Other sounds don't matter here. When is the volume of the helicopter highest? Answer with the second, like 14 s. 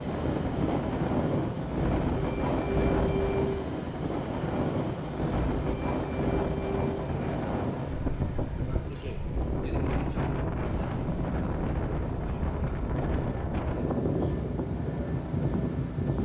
3 s.